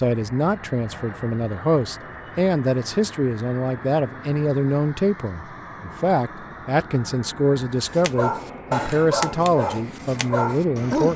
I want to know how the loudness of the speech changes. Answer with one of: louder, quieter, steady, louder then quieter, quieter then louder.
steady.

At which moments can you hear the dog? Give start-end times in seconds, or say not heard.
7.9-11.1.